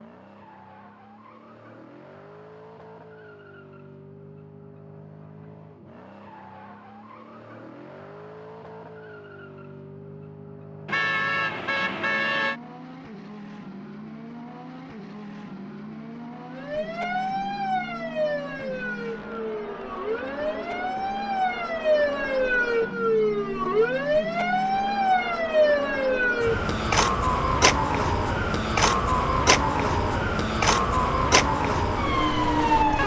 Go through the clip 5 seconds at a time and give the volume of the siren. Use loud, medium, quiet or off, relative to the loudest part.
off, off, off, medium, loud, loud, loud.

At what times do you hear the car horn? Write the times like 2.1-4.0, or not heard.
10.8-12.6.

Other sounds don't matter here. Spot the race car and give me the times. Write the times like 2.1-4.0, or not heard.
0.0-33.0.